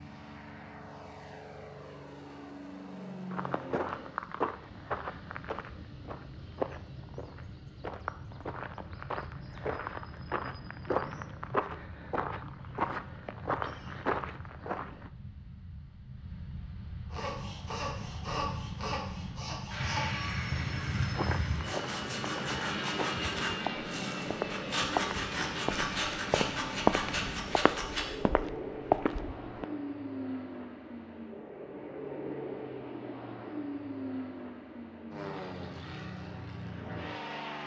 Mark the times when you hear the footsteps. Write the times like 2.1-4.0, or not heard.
3.3-15.1, 20.9-29.6.